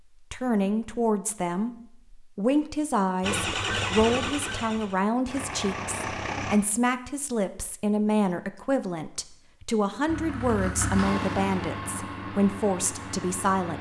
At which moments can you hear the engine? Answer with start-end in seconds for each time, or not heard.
3.2-6.6, 10.1-13.7.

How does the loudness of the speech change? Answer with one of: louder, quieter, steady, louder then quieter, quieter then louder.
steady.